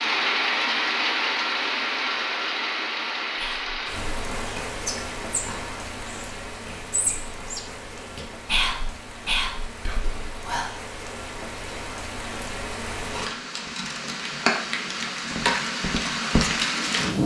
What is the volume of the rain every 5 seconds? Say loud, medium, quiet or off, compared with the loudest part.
loud, quiet, medium, loud.